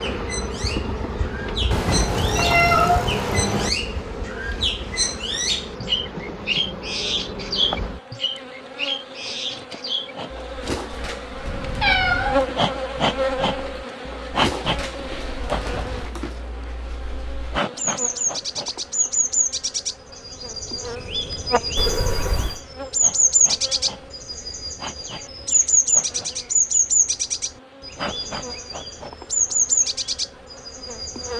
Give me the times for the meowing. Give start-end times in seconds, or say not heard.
1.7-3.7, 11.4-12.5, 21.8-22.6.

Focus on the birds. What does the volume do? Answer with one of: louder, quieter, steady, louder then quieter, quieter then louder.
louder.